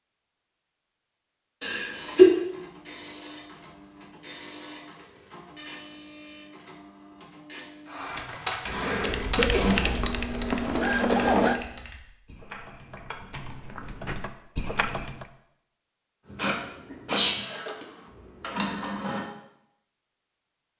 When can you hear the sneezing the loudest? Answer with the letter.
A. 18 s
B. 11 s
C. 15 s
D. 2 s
D.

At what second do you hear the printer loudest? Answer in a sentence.
The loudest moment of the printer is at 11 seconds.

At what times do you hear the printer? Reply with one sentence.
You can hear the printer from 1.9 to 11.6 s and from 16.2 to 19.3 s.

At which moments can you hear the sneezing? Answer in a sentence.
You can hear the sneezing from 1.6 to 2.3 s, from 8.7 to 10.0 s and from 16.9 to 17.9 s.